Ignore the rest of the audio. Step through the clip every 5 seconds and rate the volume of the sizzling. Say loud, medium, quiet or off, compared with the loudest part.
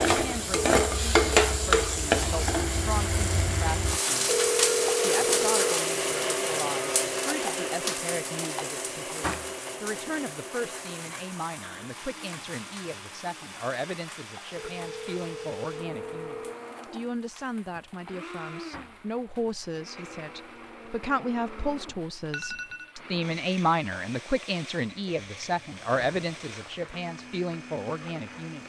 loud, medium, quiet, quiet, quiet, quiet.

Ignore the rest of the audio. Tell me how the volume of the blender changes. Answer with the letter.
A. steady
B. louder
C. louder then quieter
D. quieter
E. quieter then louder
D.